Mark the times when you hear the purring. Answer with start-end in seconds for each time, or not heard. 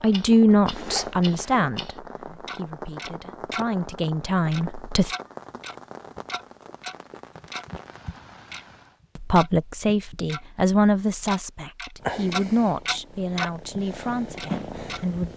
12.0-15.3.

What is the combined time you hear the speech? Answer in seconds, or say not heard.
11 s.